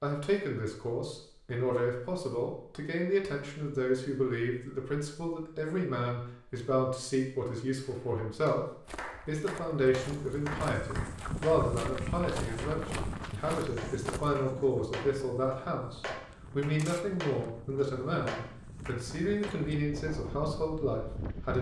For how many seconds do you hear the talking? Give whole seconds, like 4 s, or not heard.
21 s.